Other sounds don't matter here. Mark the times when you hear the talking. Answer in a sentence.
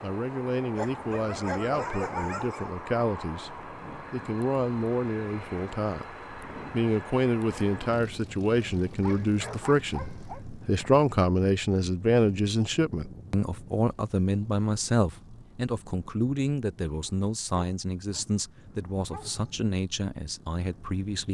The talking can be heard from 0.0 to 21.3 s.